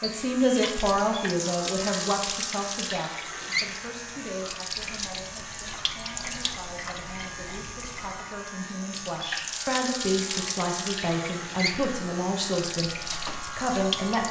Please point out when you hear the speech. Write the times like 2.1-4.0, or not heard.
0.0-14.2.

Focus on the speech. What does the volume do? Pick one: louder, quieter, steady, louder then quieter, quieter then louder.
quieter then louder.